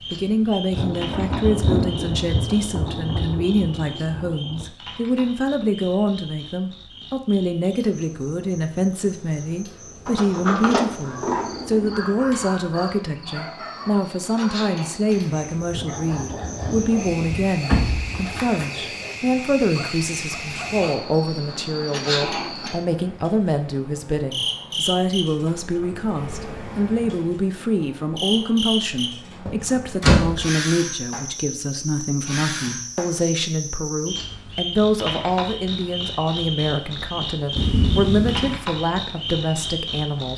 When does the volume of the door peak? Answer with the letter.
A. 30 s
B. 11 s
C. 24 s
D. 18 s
A.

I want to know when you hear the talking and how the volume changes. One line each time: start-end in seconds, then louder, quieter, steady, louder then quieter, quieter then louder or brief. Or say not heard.
0.1-40.3 steady.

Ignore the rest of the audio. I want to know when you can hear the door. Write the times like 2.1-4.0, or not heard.
10.1-11.9, 17.1-18.2, 29.4-30.4.